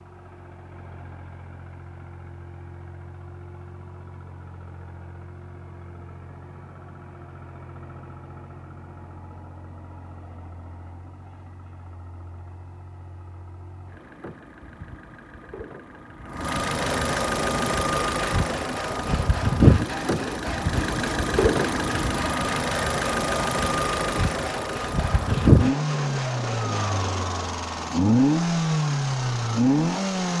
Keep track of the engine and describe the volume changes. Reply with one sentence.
The volume of the engine goes up.